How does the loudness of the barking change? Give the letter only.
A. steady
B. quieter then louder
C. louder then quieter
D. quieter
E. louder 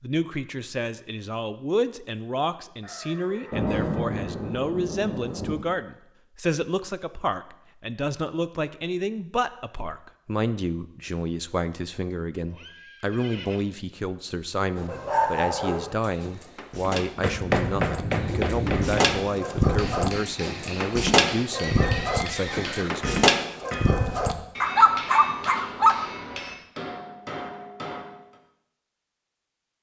E.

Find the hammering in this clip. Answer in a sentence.
The hammering can be heard from 16.9 to 28.4 s.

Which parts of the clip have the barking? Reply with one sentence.
The barking can be heard from 14.8 to 26.0 s.